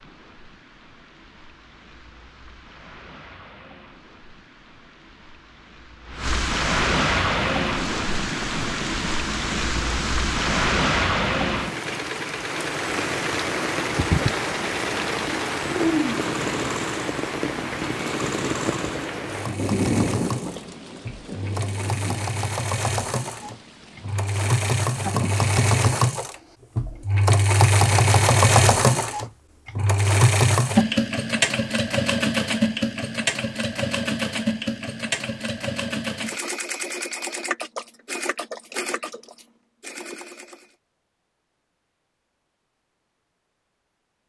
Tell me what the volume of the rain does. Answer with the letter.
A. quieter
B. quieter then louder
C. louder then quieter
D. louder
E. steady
C.